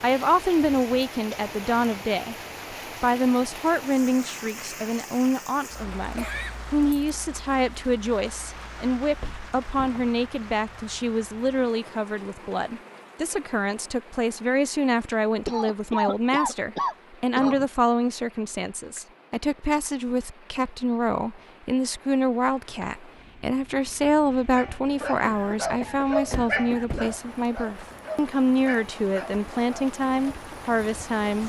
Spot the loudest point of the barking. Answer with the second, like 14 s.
26 s.